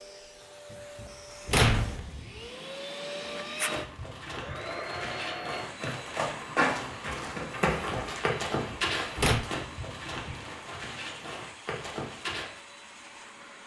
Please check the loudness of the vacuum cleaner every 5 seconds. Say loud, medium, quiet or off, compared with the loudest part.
loud, loud, medium.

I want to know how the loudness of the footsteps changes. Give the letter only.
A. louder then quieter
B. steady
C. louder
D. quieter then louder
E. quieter
A.